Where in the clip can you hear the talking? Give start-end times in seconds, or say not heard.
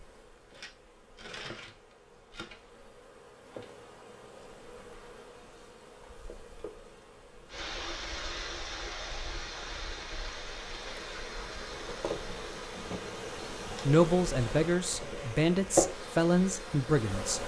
13.8-17.4.